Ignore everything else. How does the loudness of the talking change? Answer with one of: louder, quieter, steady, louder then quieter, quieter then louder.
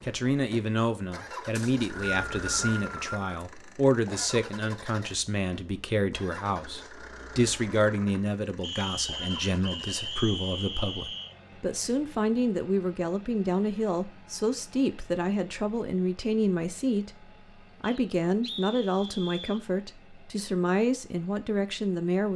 steady.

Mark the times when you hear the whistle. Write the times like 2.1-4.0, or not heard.
1.6-3.5, 8.6-11.3, 17.8-19.6.